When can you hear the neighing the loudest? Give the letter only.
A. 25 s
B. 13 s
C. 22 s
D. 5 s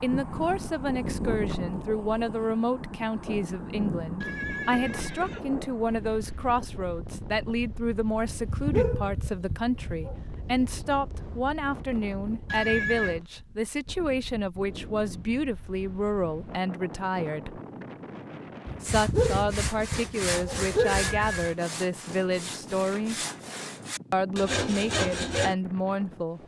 B.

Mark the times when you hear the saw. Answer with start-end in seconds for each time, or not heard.
18.9-25.6.